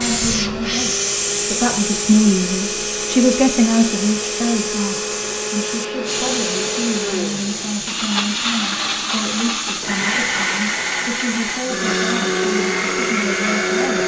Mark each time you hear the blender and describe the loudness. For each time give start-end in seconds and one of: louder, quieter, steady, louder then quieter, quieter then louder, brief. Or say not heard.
0.0-14.0 louder.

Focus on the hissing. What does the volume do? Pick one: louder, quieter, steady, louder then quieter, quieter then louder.
quieter.